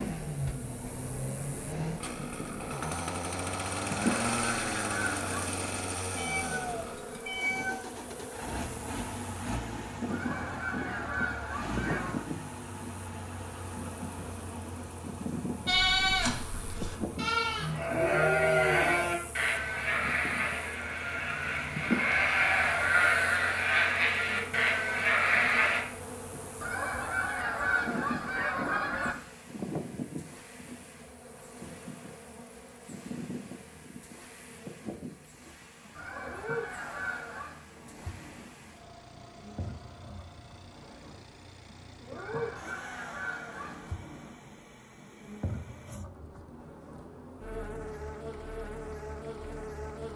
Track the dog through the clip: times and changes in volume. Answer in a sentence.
The dog can't be heard in this clip.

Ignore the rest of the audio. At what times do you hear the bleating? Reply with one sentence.
You can hear the bleating from 15.7 to 25.9 s.